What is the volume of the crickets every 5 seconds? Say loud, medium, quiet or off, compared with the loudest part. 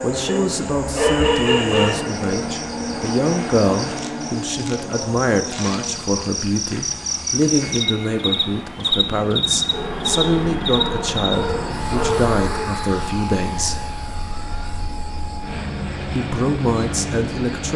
medium, loud, medium, quiet.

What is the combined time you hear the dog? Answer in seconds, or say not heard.
5 s.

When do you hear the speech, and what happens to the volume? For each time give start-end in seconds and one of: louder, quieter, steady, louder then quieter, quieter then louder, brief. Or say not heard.
0.0-13.9 steady
16.1-17.7 brief.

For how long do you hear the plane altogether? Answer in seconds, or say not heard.
18 s.